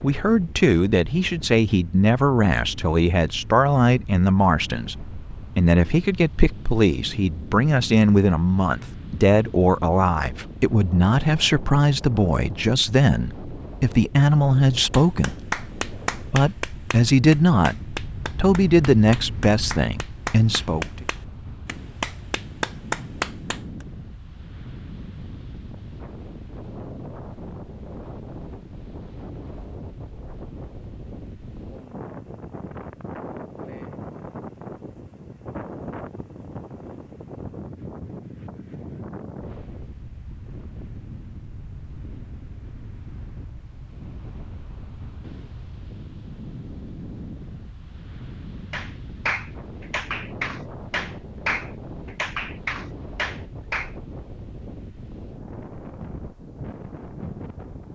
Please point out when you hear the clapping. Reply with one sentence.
The clapping can be heard from 14.9 to 23.9 s and from 48.7 to 53.9 s.